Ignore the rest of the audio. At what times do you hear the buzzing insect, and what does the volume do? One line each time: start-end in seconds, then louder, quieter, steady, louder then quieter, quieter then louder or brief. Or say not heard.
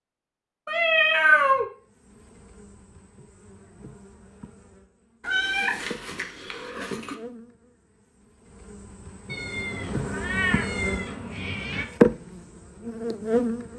1.8-13.7 louder.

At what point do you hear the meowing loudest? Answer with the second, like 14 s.
1 s.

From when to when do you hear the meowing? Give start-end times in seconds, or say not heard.
0.7-1.6, 5.2-7.2, 9.3-11.8.